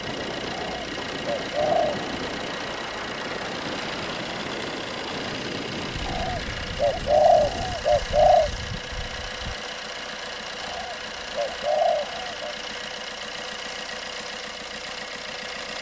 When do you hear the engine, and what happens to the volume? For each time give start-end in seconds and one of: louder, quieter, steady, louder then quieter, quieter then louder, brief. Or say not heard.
0.0-15.7 steady.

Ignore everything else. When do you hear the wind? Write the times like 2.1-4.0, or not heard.
0.0-9.6.